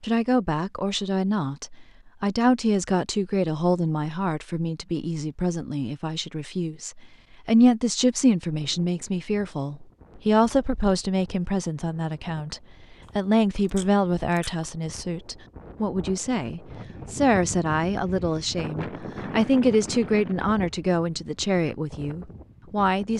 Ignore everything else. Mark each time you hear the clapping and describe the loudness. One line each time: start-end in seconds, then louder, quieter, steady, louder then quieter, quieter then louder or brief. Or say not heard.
not heard.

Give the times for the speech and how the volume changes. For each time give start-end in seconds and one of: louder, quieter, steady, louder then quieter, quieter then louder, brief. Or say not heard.
0.0-23.1 steady.